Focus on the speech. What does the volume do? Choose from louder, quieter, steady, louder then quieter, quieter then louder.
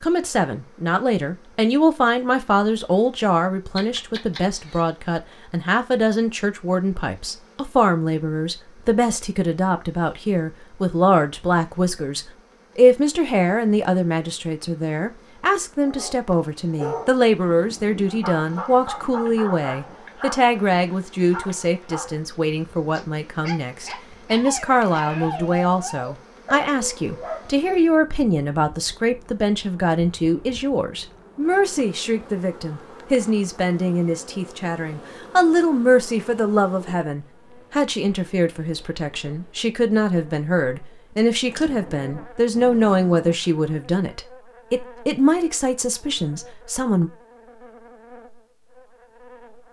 steady.